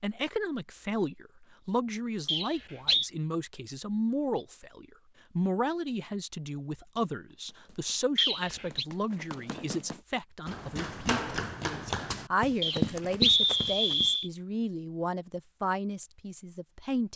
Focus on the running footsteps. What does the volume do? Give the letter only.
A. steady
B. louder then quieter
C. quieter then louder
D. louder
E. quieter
D.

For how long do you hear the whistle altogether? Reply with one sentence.
You can hear the whistle for 3 seconds altogether.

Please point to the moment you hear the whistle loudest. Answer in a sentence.
The volume of the whistle peaks at 13 seconds.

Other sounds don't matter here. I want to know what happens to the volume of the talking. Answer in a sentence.
The volume of the talking stays about the same.